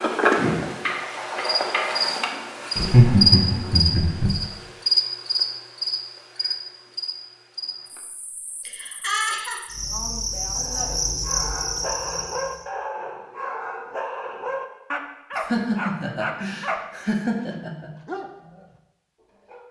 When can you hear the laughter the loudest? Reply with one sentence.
The volume of the laughter peaks at 3 seconds.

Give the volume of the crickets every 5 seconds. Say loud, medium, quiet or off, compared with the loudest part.
loud, medium, medium, off.